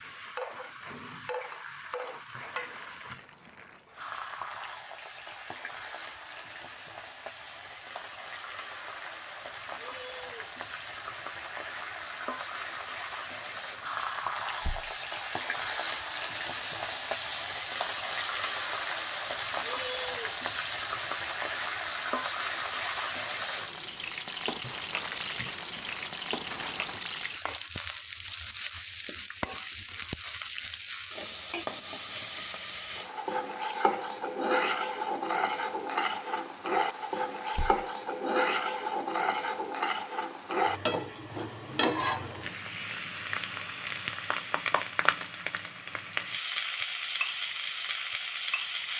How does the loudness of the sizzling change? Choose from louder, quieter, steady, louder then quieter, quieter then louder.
louder.